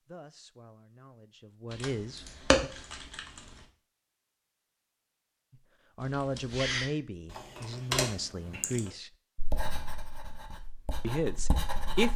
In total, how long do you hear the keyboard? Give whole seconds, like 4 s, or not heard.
5 s.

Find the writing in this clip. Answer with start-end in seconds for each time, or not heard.
9.3-12.1.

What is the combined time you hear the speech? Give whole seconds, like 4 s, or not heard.
7 s.